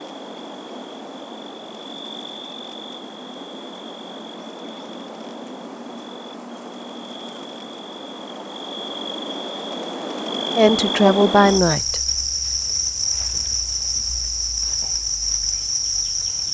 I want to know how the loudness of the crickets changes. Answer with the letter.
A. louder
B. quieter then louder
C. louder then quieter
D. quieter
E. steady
A.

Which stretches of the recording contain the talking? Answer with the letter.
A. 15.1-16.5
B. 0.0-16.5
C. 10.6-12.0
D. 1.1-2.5
C.